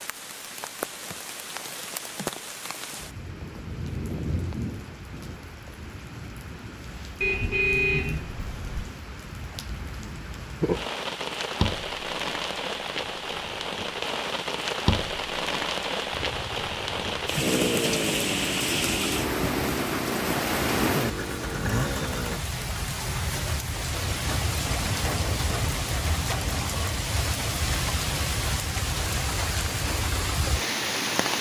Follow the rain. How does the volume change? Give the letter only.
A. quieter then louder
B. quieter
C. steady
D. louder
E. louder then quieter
D.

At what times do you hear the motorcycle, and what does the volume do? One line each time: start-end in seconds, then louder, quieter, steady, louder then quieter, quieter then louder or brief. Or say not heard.
16.1-22.4 steady.